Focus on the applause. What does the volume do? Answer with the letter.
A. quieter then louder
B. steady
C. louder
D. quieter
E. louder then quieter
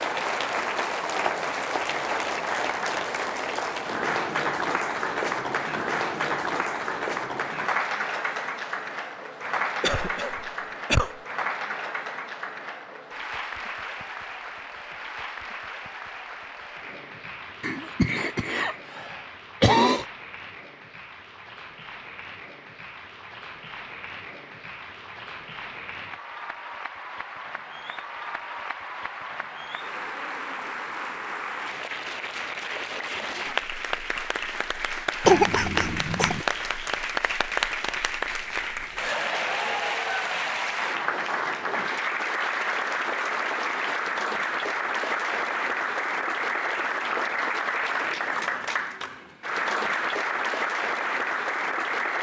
A.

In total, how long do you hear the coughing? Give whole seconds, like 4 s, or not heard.
5 s.